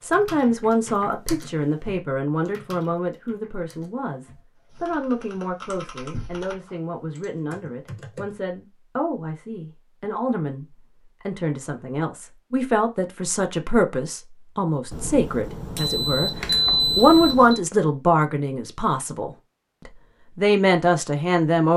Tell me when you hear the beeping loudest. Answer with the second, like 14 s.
17 s.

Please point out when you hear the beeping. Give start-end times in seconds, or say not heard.
14.9-17.6.